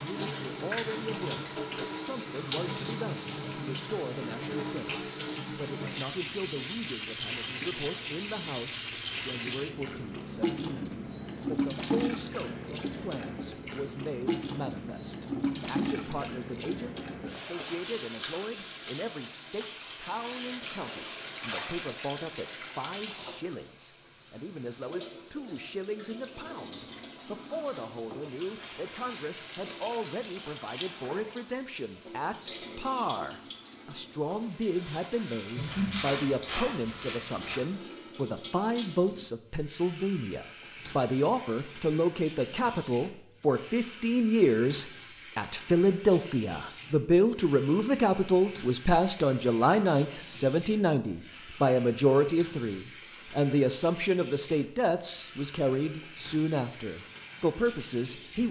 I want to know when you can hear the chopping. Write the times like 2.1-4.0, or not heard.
not heard.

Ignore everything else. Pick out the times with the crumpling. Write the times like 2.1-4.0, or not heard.
20.4-22.1, 35.5-37.6.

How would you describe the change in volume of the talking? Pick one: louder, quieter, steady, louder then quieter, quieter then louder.
louder.